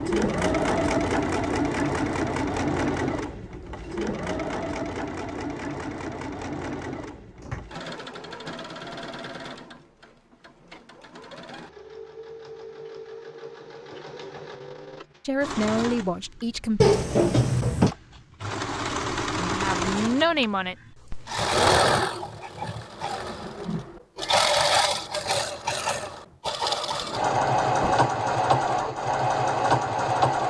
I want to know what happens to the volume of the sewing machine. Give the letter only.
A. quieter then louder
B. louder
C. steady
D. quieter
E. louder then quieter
A.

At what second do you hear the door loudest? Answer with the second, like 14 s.
17 s.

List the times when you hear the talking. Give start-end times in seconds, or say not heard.
15.2-17.0, 19.4-20.8.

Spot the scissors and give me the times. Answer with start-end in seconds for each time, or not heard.
not heard.